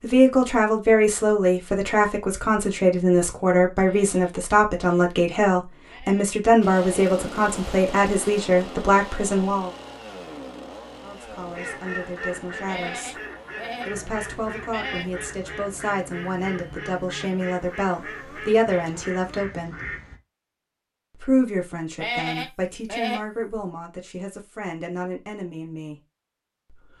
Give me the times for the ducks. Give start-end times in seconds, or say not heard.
11.3-20.1.